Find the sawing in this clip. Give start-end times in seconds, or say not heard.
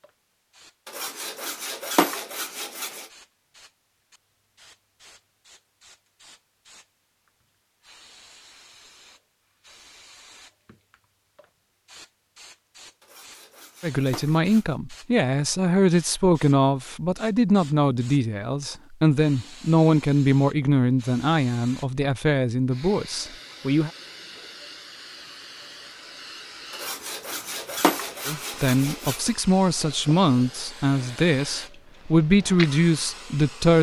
0.8-3.0, 13.0-14.8, 26.7-29.3.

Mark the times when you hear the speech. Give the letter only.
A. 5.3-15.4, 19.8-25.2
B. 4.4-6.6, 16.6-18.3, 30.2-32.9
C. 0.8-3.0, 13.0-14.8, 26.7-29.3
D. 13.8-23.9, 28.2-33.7
D.